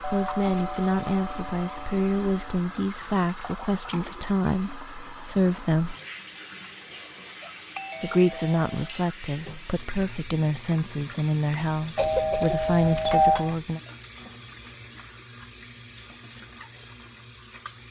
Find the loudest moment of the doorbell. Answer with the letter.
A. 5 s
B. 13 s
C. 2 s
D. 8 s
B.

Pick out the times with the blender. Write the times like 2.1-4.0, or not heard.
not heard.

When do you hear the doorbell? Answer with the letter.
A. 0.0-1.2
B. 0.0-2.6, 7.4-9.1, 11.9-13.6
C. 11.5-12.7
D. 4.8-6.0
B.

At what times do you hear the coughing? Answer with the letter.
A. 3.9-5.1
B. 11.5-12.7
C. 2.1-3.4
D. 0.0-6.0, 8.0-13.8
B.